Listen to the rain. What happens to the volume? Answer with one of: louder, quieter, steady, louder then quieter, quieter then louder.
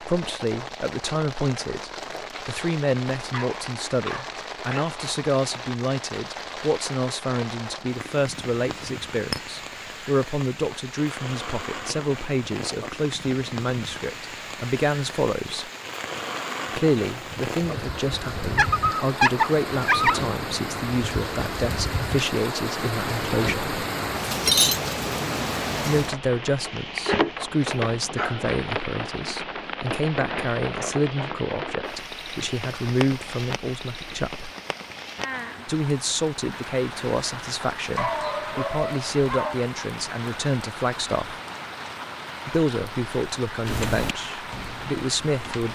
louder then quieter.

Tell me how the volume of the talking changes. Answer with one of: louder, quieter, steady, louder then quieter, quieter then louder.
steady.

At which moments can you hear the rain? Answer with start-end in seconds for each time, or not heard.
0.0-45.6.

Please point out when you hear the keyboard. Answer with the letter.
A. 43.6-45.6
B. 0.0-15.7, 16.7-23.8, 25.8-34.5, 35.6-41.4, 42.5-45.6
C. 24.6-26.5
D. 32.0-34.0
A.